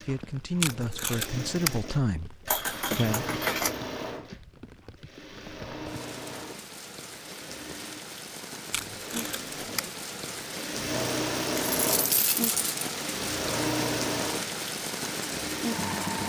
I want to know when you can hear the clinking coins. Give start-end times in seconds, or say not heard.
2.5-3.8, 11.7-12.8.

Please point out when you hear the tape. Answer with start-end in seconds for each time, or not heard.
0.6-1.8, 8.7-9.9.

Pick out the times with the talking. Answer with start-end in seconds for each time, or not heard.
0.1-3.4.